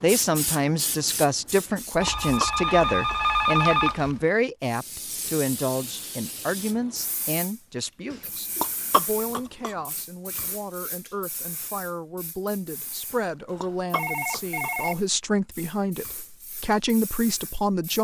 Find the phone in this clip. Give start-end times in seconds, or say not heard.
2.0-4.2, 13.5-15.0.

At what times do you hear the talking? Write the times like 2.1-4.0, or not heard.
0.0-18.0.